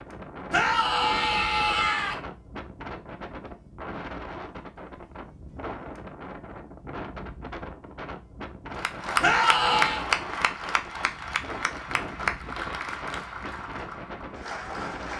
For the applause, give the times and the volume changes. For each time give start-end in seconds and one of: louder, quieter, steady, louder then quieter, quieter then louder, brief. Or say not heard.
8.8-15.1 quieter.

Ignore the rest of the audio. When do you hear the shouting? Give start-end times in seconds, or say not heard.
0.5-2.1, 9.2-10.1.